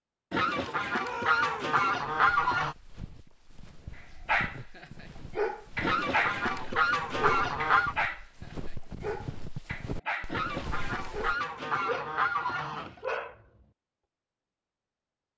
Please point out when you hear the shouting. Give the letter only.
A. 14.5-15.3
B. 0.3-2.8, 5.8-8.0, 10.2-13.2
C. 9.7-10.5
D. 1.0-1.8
D.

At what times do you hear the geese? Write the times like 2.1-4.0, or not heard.
0.3-2.8, 5.8-8.0, 10.2-13.2.